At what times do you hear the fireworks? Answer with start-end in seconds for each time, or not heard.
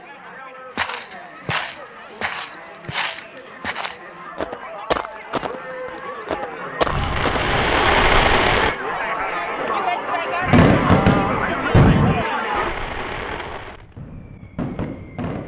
6.8-8.8, 10.4-15.4.